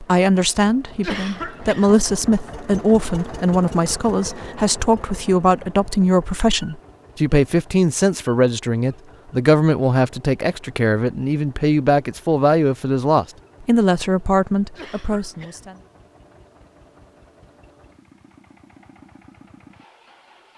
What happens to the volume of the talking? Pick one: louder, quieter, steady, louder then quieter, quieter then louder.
steady.